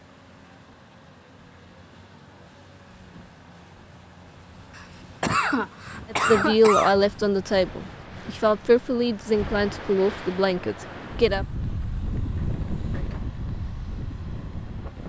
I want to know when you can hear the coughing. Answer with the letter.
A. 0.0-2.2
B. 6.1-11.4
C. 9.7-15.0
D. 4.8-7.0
D.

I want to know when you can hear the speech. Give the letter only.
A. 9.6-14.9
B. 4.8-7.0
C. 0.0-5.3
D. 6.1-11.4
D.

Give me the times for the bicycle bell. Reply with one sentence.
You can't hear the bicycle bell here.